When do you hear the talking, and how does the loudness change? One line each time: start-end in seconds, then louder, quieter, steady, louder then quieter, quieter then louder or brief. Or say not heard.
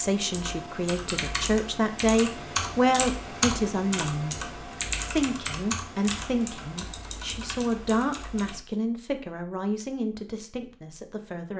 0.0-11.5 quieter.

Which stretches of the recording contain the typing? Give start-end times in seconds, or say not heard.
0.0-8.6.